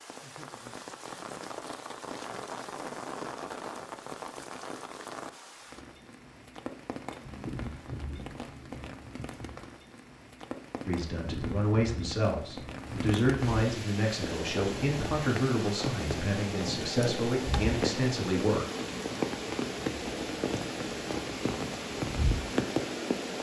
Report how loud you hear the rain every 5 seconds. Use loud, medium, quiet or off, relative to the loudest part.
medium, medium, medium, loud, loud.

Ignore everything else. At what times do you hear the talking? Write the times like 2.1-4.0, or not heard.
10.8-18.6.